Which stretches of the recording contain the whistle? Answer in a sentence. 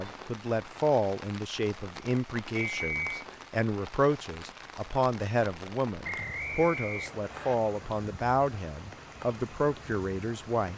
The whistle can be heard from 2.5 to 3.1 s and from 6.0 to 7.5 s.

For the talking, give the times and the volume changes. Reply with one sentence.
The talking can be heard from 0.0 to 10.7 s, at a steady volume.